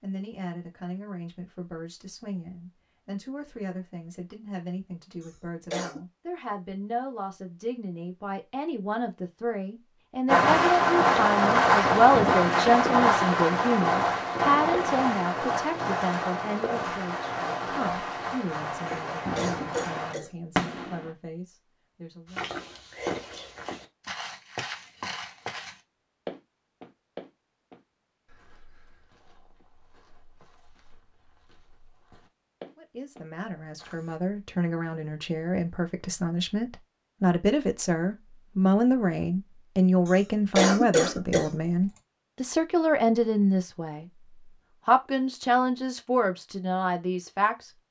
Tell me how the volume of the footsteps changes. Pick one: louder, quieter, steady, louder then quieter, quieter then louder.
quieter then louder.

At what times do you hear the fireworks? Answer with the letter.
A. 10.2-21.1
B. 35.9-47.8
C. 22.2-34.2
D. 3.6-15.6
A.